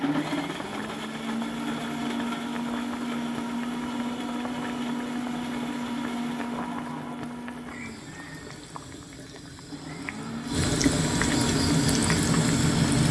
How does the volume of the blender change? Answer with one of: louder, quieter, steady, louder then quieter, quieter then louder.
quieter then louder.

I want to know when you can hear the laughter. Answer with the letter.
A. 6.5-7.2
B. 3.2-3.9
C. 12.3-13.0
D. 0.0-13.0
A.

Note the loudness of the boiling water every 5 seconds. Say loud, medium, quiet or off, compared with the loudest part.
quiet, quiet, loud.